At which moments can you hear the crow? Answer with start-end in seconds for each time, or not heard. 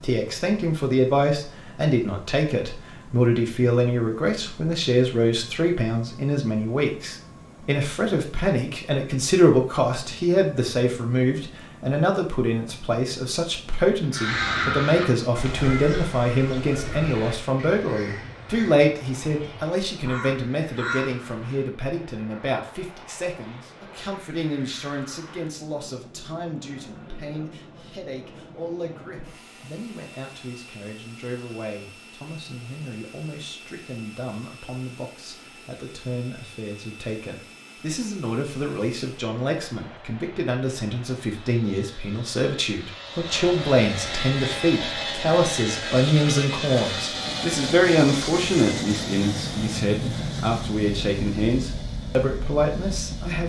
14.1-21.1.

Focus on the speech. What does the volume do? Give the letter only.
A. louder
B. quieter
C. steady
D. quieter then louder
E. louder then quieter
D.